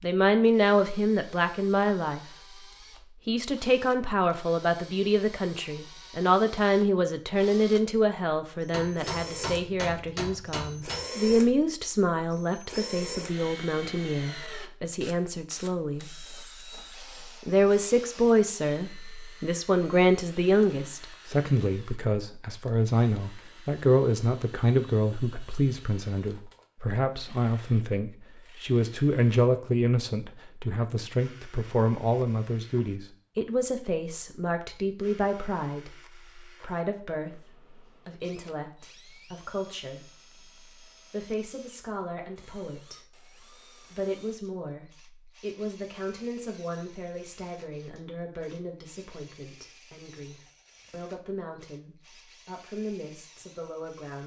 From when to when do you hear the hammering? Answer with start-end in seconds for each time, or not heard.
8.7-11.1.